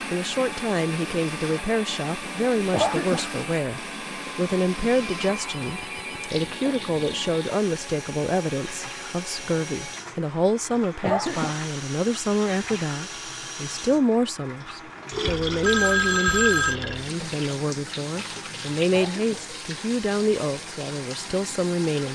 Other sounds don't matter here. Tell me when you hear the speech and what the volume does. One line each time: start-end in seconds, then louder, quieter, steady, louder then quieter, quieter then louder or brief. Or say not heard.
0.1-22.1 steady.